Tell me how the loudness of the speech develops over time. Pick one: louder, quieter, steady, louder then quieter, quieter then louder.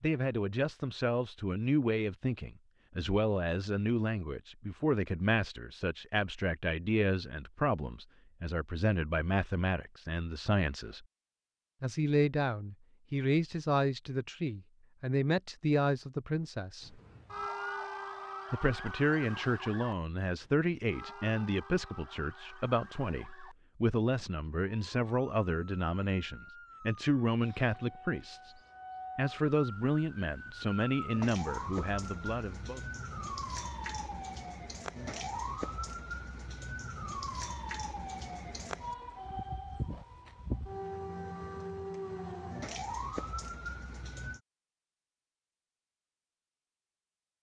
steady.